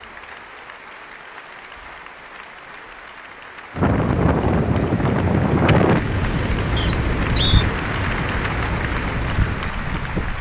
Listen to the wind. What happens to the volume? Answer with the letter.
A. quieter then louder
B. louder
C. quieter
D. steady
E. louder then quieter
C.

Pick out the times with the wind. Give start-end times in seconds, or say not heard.
3.8-10.3.